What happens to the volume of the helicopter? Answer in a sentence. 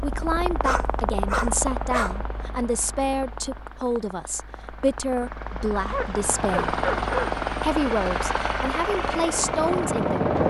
The loudness of the helicopter goes down, then up.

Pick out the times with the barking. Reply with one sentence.
The barking can be heard from 0.6 to 2.1 s and from 5.9 to 7.3 s.